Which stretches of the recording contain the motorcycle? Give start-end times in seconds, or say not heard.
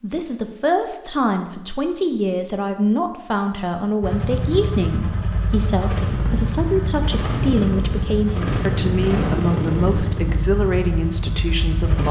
4.0-12.0.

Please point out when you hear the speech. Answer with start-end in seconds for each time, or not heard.
0.0-12.0.